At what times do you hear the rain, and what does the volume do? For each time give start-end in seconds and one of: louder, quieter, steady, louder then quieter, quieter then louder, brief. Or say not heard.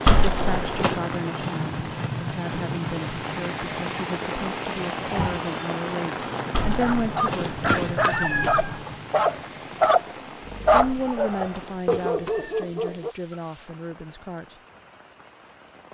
0.0-15.8 quieter.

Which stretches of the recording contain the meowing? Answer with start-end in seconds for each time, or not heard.
0.1-1.0, 6.5-8.8, 10.8-12.7.